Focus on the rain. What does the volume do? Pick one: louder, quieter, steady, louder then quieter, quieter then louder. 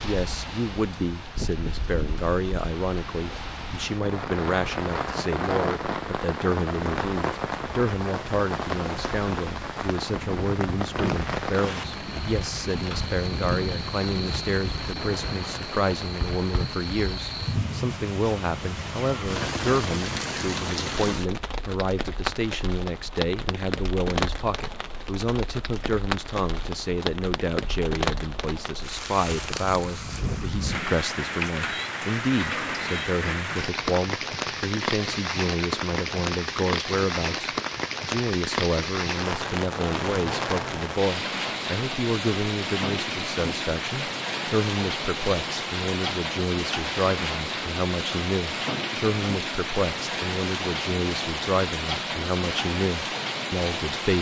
steady.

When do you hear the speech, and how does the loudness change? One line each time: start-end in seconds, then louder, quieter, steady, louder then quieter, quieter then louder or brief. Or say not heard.
0.0-54.1 steady.